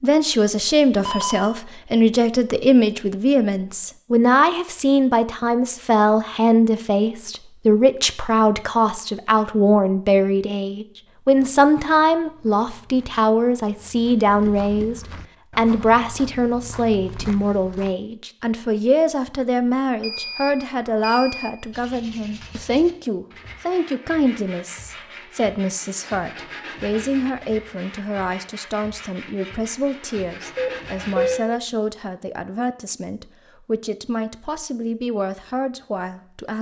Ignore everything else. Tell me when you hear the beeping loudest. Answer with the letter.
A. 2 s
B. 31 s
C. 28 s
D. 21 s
B.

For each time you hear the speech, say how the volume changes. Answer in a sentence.
You can hear the speech from 0.0 to 36.5 s, getting quieter.